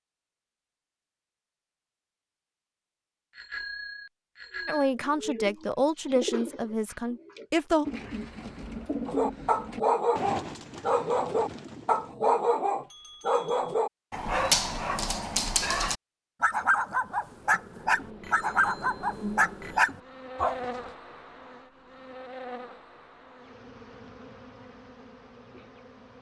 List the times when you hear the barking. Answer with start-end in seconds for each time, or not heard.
9.1-20.6.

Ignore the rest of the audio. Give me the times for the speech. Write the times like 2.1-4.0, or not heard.
4.7-7.8.